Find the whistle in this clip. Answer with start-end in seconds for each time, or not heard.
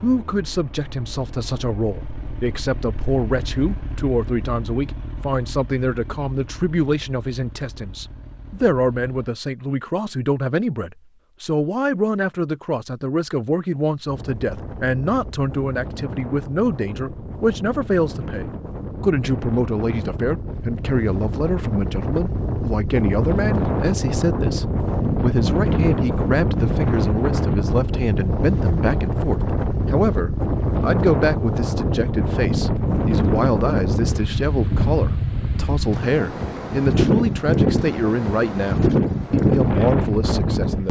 not heard.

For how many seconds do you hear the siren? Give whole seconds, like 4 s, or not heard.
not heard.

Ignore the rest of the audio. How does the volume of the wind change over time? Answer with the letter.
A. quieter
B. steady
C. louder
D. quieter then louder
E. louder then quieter
C.